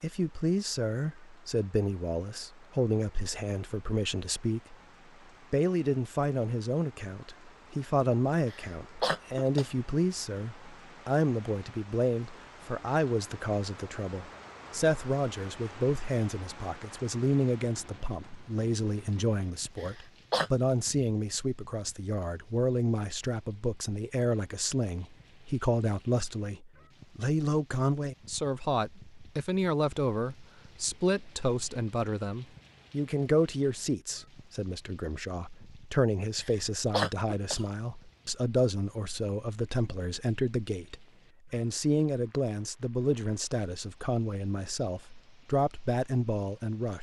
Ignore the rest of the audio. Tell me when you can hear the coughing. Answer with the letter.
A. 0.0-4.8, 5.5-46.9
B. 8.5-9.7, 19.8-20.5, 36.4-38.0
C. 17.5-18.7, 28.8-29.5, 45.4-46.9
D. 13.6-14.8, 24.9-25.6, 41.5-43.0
B.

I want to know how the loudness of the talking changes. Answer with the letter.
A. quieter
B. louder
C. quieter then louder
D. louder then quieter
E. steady
E.